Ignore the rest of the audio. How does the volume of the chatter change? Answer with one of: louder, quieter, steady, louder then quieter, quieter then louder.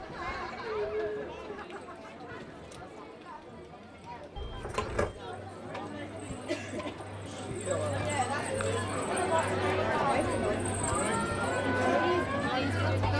quieter then louder.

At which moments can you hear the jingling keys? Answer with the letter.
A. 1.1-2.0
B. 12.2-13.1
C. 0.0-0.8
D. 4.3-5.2
D.